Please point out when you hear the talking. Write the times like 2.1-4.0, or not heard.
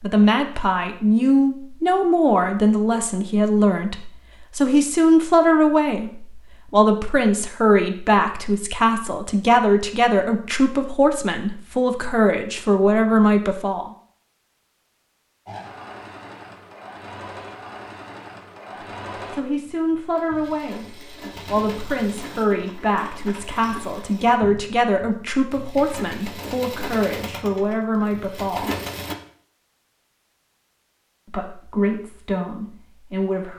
0.0-13.9, 19.3-28.7, 31.2-33.5.